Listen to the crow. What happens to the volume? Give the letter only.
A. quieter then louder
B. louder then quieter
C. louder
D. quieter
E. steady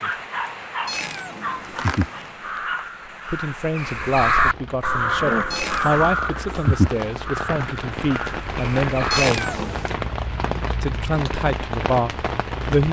B.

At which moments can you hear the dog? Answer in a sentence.
You can hear the dog from 0.0 to 2.9 s.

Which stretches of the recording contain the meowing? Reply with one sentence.
The meowing can be heard from 0.8 to 2.3 s, from 5.5 to 6.2 s and from 9.1 to 9.9 s.